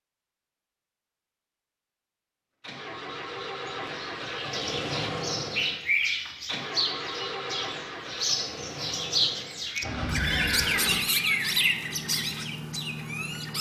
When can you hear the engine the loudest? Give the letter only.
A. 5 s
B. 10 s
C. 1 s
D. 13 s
A.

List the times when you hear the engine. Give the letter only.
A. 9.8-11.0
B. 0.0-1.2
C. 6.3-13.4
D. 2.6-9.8
D.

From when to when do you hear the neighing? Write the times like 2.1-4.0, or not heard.
9.8-11.0.